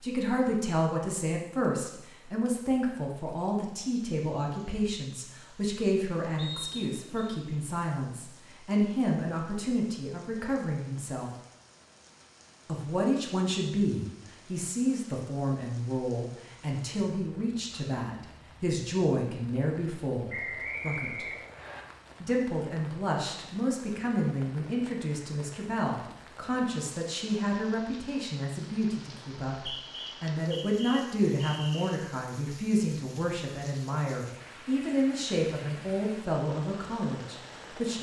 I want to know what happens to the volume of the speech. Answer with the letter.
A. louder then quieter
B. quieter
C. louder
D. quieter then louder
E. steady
E.